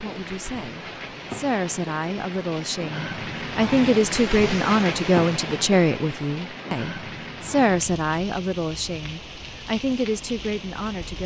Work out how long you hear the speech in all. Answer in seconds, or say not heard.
11 s.